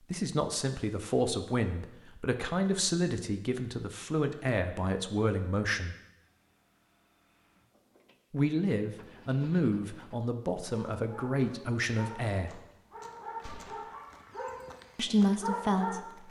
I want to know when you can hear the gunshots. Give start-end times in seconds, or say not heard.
13.4-14.1.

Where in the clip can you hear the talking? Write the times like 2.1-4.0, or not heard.
0.1-6.0, 8.3-12.6, 14.9-16.2.